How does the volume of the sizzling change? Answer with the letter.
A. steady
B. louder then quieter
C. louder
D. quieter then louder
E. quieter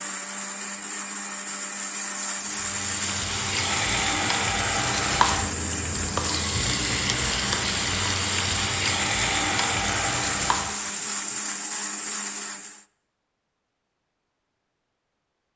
A.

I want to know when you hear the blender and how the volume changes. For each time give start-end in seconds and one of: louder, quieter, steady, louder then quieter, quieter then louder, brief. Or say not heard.
0.0-12.8 steady.